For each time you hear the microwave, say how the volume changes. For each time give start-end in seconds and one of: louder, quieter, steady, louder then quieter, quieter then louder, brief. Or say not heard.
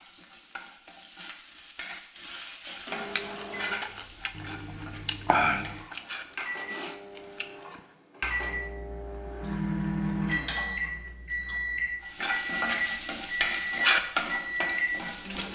2.9-15.4 louder.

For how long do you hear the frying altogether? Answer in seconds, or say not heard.
11 s.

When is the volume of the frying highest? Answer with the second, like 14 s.
14 s.